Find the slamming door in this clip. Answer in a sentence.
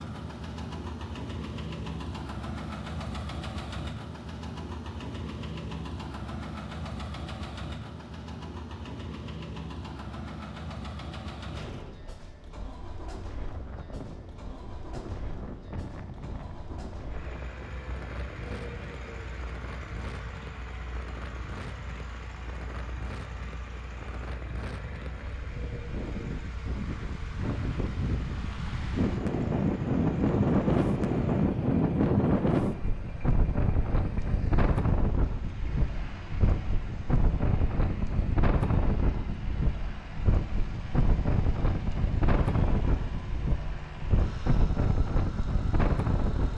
The slamming door can be heard from 11.5 to 12.2 s.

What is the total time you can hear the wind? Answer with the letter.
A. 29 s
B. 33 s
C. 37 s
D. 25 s
B.